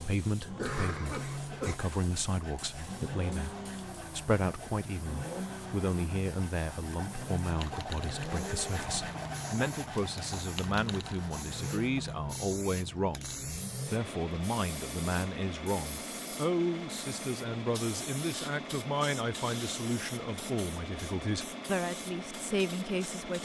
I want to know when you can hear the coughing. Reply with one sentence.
The coughing can be heard from 0.6 to 1.8 s.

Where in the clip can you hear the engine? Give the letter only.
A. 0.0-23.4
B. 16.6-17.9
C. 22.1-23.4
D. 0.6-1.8
A.